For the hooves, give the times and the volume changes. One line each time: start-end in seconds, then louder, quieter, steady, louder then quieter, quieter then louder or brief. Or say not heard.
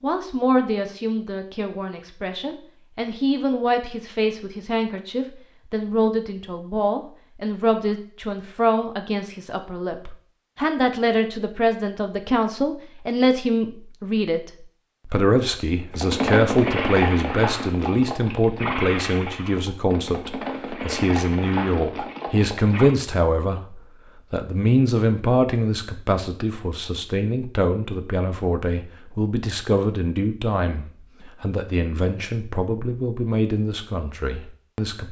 15.9-22.9 quieter.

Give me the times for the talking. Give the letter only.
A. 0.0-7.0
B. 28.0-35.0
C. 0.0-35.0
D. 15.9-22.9
C.